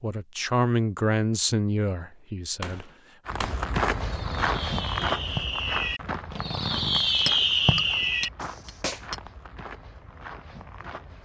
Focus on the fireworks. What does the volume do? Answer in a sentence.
The volume of the fireworks goes up.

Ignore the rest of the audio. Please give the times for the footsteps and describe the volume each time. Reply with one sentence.
You can hear the footsteps from 3.2 to 11.1 s, getting quieter.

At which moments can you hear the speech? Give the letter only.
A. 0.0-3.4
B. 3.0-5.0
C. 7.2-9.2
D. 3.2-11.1
A.